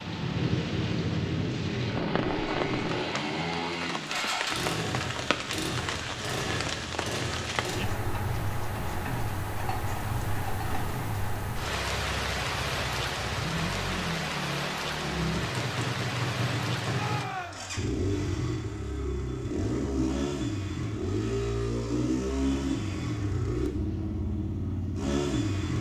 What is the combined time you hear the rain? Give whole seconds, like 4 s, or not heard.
17 s.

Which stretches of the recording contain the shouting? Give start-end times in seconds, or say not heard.
16.9-17.8.